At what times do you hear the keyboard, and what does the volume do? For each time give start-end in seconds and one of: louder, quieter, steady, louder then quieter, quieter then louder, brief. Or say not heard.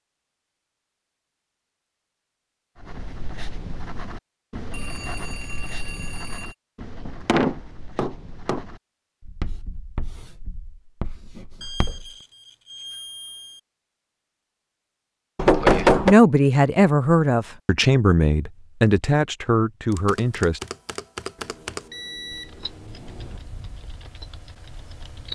19.9-25.3 quieter.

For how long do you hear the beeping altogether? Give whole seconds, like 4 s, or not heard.
6 s.